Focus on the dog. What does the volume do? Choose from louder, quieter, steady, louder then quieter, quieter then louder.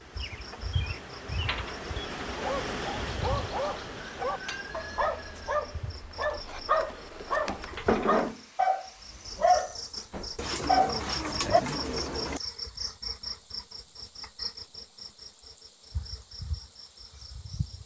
louder.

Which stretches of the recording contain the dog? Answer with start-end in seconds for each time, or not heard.
2.4-11.6.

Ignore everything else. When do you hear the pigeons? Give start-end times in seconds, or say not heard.
10.3-12.4.